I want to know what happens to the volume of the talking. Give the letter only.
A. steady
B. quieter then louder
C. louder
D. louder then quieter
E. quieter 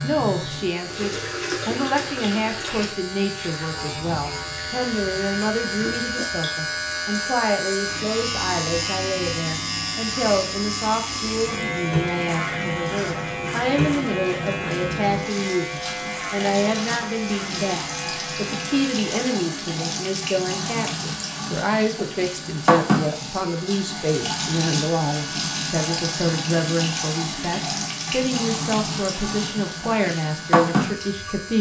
A.